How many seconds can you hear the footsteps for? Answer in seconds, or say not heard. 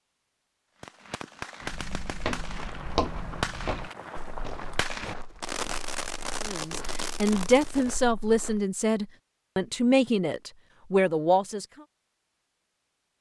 7 s.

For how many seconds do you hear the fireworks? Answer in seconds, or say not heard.
7 s.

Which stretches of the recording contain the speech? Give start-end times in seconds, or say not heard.
6.4-11.7.